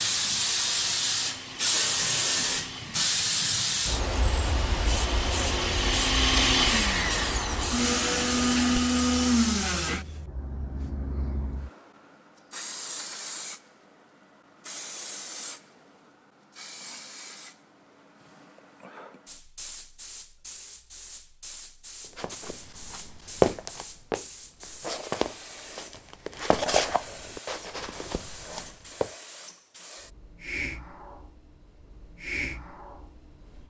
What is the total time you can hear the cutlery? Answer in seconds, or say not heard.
not heard.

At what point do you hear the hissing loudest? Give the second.
2 s.